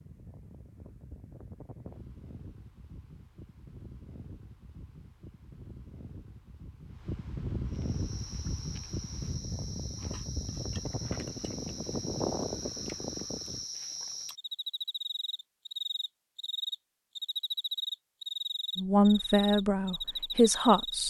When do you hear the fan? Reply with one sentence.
The fan can be heard from 0.0 to 13.7 s.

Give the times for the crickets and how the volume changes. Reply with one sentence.
You can hear the crickets from 7.7 to 21.0 s, getting louder.